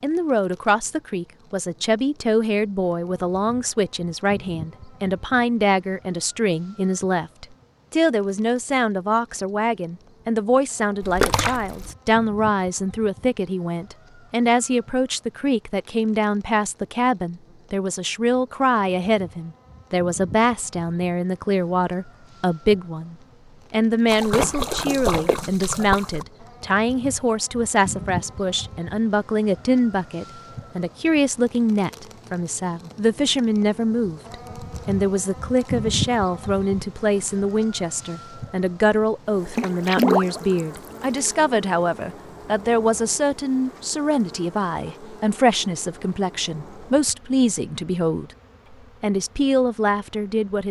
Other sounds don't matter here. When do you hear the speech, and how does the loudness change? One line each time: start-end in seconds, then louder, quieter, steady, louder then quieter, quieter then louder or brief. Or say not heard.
0.0-48.3 steady
49.0-50.6 brief.